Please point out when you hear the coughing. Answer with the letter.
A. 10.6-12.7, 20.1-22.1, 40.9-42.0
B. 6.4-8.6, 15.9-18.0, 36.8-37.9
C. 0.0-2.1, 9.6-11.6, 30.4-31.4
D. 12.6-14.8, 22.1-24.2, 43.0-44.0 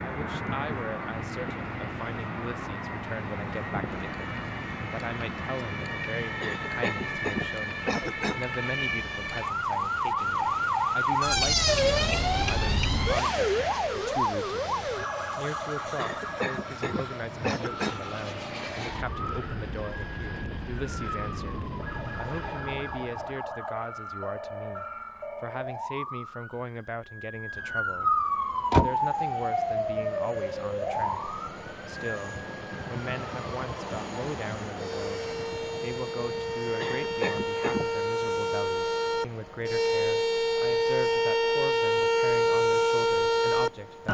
B.